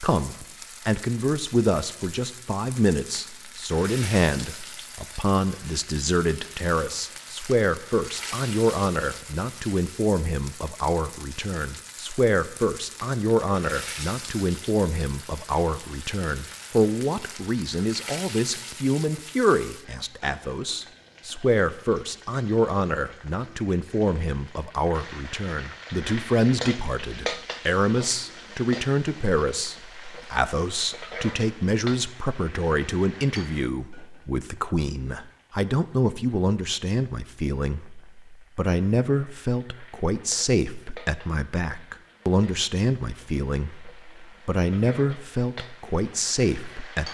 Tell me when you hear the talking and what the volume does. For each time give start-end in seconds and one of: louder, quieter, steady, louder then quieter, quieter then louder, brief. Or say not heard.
0.0-47.0 steady.